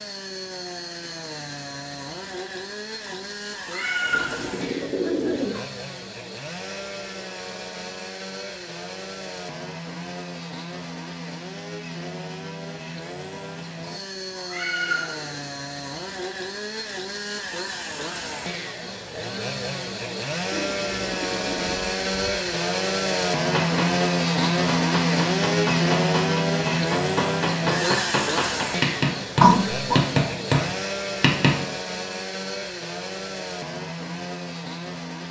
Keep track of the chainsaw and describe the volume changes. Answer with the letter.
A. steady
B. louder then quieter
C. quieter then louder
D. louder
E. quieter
B.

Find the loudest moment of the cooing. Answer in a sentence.
The loudest moment of the cooing is at 5 seconds.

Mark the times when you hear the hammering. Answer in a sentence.
You can hear the hammering from 23.5 to 31.6 s.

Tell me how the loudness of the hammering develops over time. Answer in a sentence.
The volume of the hammering goes up.